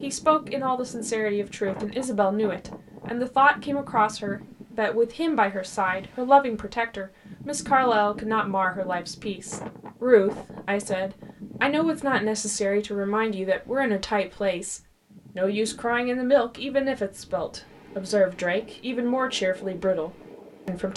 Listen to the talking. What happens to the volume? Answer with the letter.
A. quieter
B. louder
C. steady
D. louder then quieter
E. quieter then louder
C.